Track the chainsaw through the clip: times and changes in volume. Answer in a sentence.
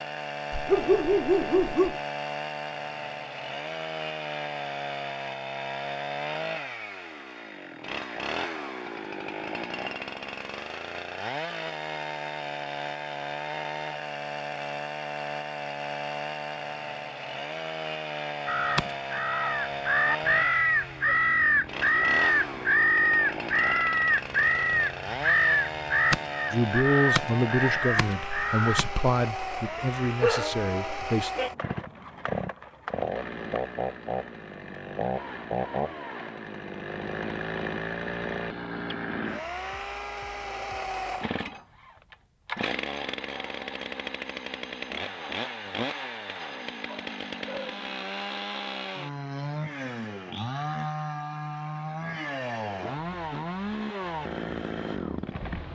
You can hear the chainsaw from 0.0 to 55.7 s, at a steady volume.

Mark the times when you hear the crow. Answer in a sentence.
The crow can be heard from 18.4 to 28.9 s.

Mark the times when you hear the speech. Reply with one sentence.
You can hear the speech from 26.5 to 31.3 s.